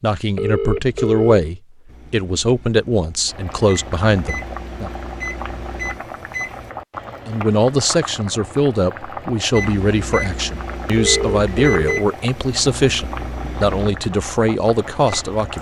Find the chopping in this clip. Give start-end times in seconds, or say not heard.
not heard.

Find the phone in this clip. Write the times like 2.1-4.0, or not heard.
0.3-1.5, 10.9-12.1.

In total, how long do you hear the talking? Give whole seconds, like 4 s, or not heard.
13 s.